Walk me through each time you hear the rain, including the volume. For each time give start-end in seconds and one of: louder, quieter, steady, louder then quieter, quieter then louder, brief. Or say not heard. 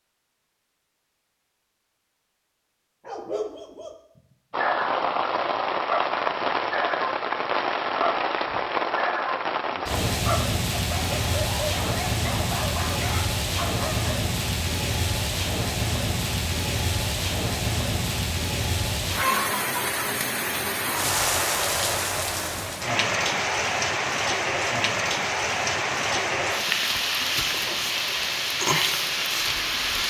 4.5-30.0 steady.